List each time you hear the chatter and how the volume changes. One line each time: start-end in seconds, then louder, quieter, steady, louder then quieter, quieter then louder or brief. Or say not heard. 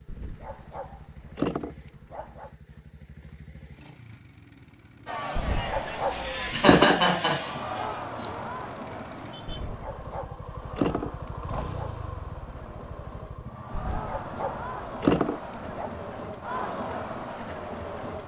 5.0-18.2 quieter then louder.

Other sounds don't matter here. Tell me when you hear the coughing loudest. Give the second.
7 s.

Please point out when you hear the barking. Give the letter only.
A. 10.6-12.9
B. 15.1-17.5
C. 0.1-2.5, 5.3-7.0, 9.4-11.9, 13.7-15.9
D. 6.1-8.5
C.